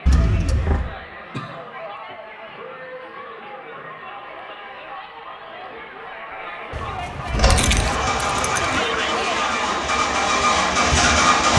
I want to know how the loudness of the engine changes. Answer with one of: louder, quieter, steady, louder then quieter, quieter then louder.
louder.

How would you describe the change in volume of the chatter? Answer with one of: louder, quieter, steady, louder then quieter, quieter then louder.
louder.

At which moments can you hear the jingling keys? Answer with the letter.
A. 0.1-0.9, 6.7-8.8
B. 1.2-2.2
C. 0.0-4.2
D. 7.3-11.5
A.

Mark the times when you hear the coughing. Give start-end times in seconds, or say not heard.
1.2-2.2.